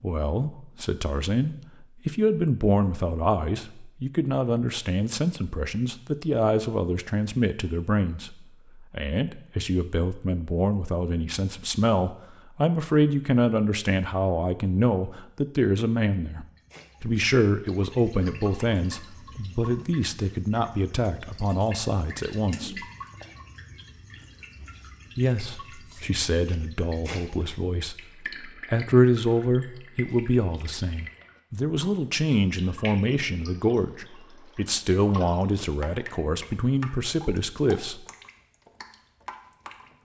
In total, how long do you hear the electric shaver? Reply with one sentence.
The electric shaver can't be heard in this clip.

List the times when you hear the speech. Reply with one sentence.
You can hear the speech from 0.0 to 22.9 s and from 25.1 to 38.0 s.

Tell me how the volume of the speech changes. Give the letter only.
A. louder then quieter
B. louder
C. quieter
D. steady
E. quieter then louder
D.